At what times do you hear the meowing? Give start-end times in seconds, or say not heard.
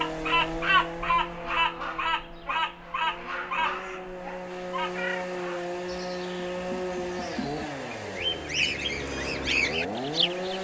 4.5-5.3.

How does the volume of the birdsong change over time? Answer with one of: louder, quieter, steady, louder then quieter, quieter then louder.
quieter then louder.